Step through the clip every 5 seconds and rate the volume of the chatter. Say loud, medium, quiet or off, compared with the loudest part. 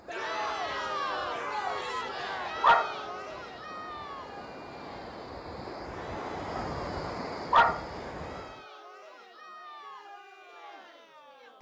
loud, quiet, quiet.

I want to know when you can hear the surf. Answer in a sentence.
The surf can be heard from 0.0 to 8.7 s.